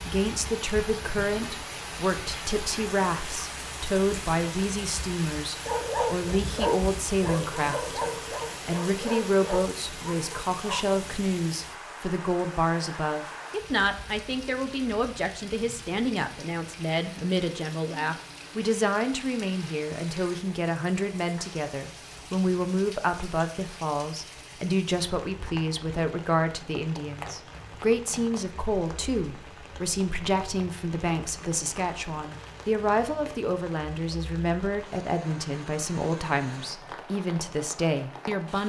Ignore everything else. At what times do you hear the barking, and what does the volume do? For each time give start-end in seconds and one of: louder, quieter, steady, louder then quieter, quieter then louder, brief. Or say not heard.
5.7-10.9 quieter.